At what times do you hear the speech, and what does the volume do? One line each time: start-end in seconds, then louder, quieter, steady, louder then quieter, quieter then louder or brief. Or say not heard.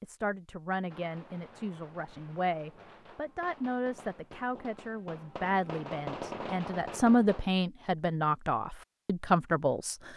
0.0-10.1 louder.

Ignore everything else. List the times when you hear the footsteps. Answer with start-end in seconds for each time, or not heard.
not heard.